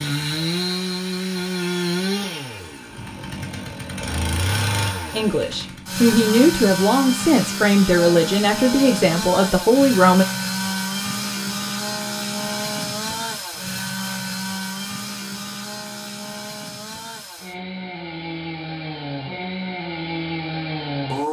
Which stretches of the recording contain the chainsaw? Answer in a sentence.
The chainsaw can be heard from 0.0 to 21.2 s.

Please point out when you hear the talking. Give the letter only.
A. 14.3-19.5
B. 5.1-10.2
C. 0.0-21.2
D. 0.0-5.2
B.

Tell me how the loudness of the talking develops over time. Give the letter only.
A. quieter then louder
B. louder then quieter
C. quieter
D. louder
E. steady
E.